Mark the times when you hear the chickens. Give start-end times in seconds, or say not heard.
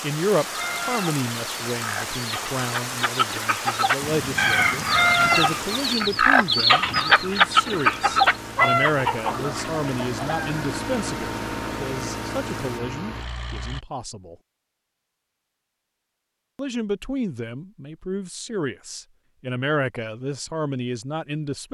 0.3-10.6.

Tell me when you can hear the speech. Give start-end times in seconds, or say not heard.
0.0-14.3, 16.6-21.6.